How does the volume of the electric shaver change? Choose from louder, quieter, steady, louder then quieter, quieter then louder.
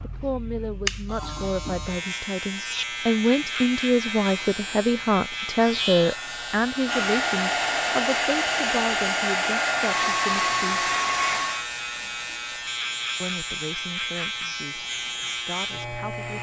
steady.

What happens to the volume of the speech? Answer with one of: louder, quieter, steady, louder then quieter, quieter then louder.
louder then quieter.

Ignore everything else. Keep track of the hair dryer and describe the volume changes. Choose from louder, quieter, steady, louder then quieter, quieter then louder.
steady.